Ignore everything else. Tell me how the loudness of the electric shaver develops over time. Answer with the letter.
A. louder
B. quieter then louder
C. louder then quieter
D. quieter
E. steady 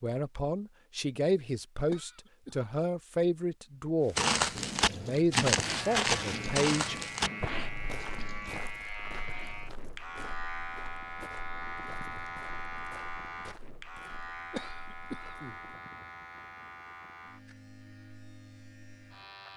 D.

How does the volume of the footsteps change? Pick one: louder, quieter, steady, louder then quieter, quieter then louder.
quieter.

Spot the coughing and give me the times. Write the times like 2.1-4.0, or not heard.
1.9-2.6, 14.5-15.6.